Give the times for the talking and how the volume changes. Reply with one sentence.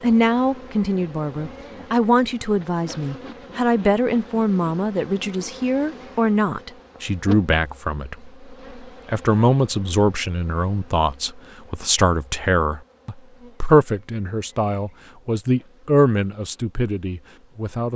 The talking can be heard from 0.0 to 17.9 s, at a steady volume.